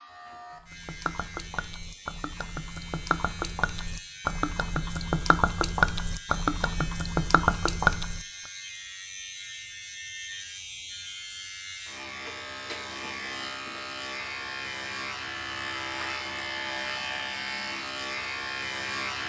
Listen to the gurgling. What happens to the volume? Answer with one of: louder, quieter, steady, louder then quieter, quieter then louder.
louder.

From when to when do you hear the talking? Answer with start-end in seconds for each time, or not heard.
not heard.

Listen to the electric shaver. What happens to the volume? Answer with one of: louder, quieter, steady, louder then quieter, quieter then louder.
louder.